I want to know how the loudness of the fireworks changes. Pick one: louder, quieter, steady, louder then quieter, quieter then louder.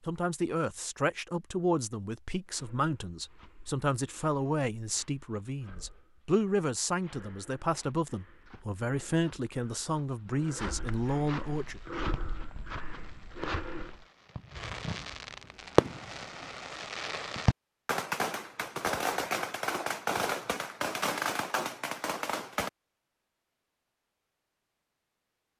louder.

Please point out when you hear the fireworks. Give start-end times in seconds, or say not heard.
11.6-22.7.